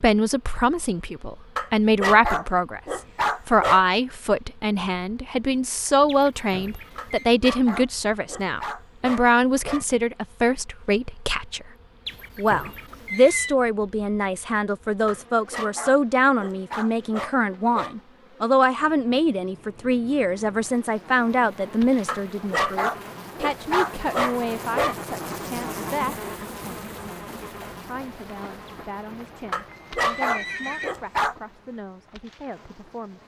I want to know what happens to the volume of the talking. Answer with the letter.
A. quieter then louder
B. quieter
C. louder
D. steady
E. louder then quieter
B.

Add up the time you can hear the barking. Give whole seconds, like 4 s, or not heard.
13 s.